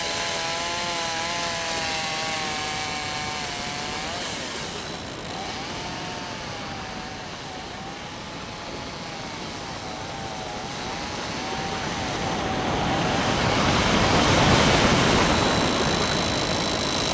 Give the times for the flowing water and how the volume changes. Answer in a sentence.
The flowing water can be heard from 0.0 to 17.0 s, getting louder.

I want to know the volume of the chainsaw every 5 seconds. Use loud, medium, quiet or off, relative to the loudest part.
loud, medium, loud, loud.